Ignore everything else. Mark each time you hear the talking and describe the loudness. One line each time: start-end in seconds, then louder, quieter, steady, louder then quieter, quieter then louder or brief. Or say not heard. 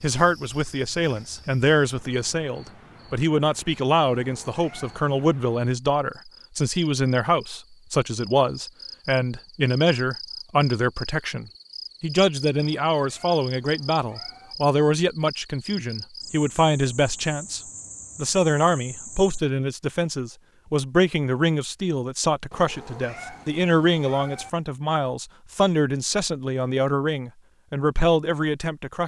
0.0-29.0 steady.